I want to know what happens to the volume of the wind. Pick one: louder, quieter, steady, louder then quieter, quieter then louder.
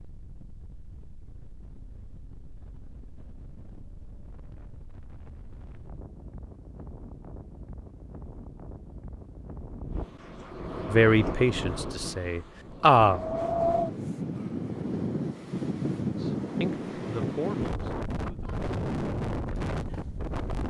louder.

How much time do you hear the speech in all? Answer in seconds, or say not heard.
5 s.